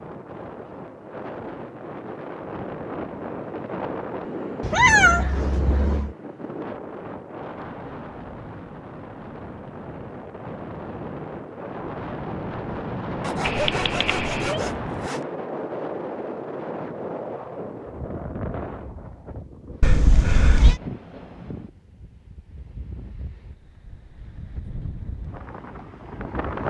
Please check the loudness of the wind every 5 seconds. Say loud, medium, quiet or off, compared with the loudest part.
loud, loud, loud, loud, medium, loud.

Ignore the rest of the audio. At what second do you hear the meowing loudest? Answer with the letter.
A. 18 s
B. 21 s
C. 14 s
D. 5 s
D.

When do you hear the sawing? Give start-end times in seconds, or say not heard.
13.2-15.2.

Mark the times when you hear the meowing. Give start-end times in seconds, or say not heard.
4.6-6.2, 13.4-14.6, 19.8-20.8.